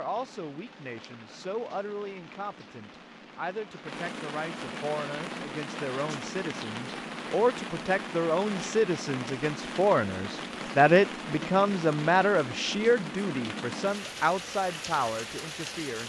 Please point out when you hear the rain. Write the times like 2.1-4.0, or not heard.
0.0-16.0.